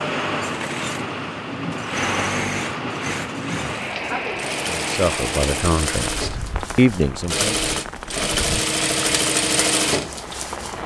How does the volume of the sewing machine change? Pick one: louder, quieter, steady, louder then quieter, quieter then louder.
louder.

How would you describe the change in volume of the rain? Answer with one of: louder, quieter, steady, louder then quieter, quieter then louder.
quieter.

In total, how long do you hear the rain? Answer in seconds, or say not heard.
11 s.